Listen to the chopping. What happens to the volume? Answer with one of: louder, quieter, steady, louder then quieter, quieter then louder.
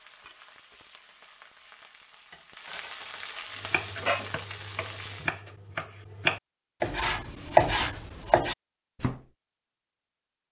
louder then quieter.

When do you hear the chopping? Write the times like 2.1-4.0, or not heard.
3.6-9.2.